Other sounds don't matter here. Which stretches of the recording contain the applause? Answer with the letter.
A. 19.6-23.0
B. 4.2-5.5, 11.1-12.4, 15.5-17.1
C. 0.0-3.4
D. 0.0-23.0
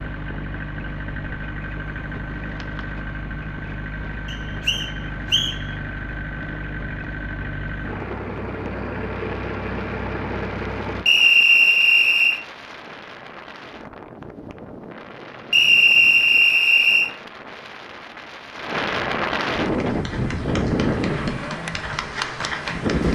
A.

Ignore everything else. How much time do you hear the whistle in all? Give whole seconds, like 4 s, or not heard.
4 s.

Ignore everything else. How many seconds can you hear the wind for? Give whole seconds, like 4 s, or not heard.
23 s.